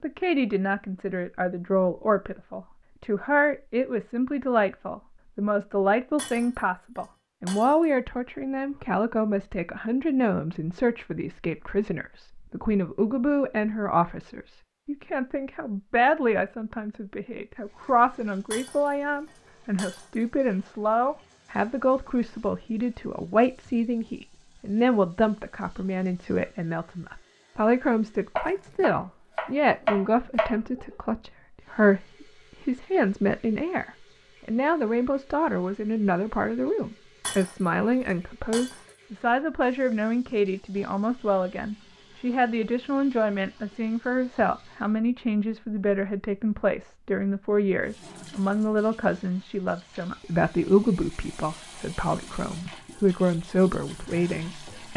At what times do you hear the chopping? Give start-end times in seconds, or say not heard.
28.4-30.6.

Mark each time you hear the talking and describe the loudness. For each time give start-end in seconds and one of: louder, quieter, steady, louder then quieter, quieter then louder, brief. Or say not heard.
0.0-54.9 steady.